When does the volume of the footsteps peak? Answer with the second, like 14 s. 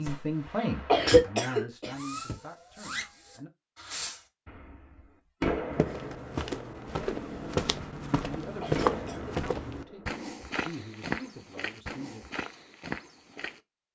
9 s.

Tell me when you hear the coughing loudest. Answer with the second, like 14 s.
1 s.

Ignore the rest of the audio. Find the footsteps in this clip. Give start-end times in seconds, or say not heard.
5.7-13.6.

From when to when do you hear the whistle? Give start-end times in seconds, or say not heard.
not heard.